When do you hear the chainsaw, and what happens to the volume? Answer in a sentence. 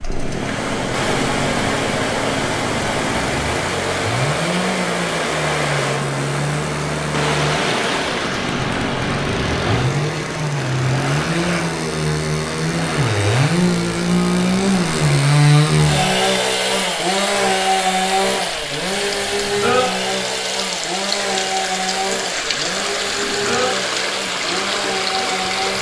You can hear the chainsaw from 0.0 to 25.7 s, getting louder then quieter.